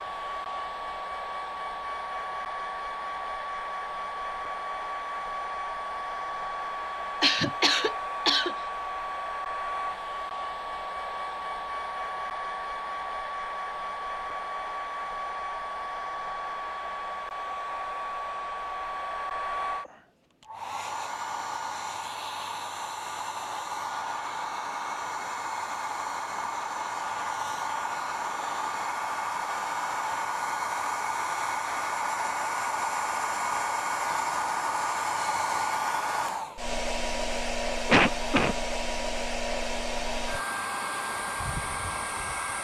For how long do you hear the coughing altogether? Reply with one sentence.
You can hear the coughing for 2 seconds altogether.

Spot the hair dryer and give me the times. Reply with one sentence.
The hair dryer can be heard from 0.0 to 42.5 s.